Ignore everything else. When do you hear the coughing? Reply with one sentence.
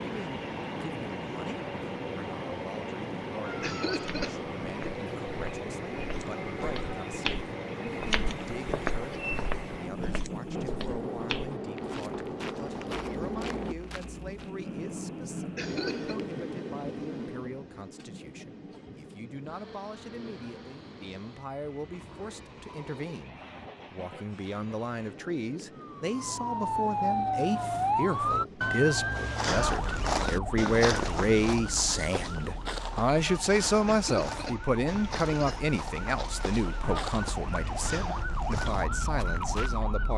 You can hear the coughing from 3.6 to 4.3 s, from 15.6 to 16.1 s and from 33.9 to 35.8 s.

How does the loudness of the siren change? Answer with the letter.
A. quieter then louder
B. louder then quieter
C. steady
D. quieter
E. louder
A.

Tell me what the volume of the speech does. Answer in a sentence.
The volume of the speech goes up.